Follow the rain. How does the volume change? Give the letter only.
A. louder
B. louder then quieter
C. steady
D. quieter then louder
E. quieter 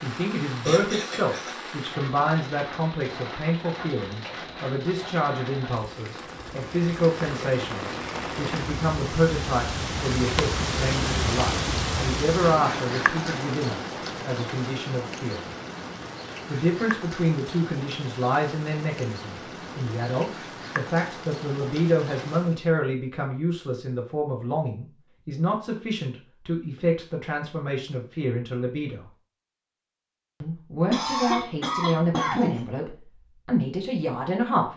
B.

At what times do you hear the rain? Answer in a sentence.
The rain can be heard from 0.0 to 22.6 s.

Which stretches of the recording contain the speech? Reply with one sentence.
The speech can be heard from 0.0 to 15.4 s, from 16.5 to 29.1 s and from 30.4 to 34.7 s.